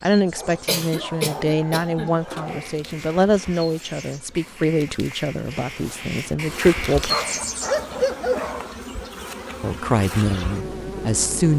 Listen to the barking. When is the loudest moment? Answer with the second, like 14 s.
8 s.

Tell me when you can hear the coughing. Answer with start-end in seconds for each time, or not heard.
0.7-2.1.